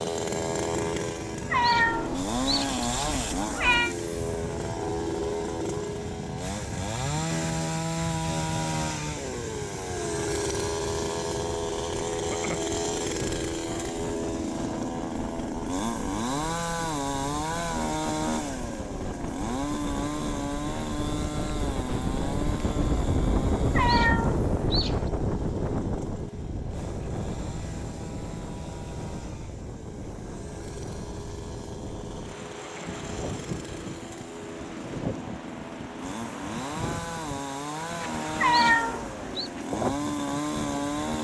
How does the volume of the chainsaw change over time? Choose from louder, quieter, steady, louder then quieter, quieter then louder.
quieter then louder.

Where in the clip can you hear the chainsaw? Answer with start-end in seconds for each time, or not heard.
0.0-41.1.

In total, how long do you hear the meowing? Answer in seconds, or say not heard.
5 s.